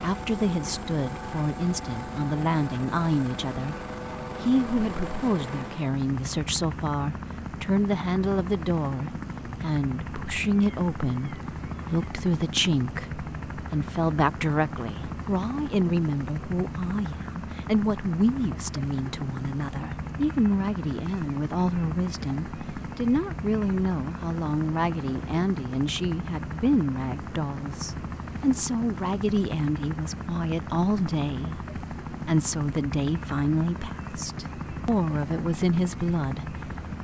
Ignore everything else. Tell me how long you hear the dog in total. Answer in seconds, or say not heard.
not heard.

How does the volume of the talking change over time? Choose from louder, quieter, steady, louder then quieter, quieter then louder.
steady.